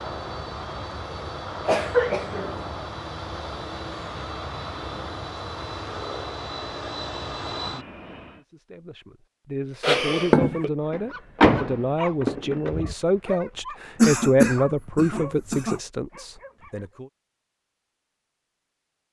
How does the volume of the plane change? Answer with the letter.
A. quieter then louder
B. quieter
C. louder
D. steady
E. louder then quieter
D.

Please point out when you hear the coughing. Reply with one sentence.
The coughing can be heard from 1.6 to 2.6 s, from 9.8 to 10.7 s and from 14.0 to 15.8 s.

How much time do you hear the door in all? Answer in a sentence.
The door can be heard for 2 seconds in total.